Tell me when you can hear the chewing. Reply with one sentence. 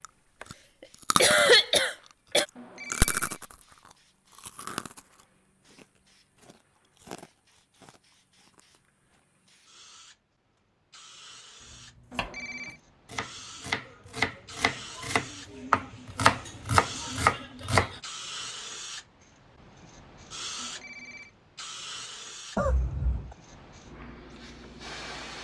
The chewing can be heard from 0.0 to 1.6 s and from 2.4 to 9.2 s.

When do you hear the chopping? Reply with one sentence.
The chopping can be heard from 11.6 to 18.0 s.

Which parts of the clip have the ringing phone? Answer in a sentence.
You can hear the ringing phone from 2.5 to 3.4 s, from 12.1 to 12.8 s and from 20.6 to 21.4 s.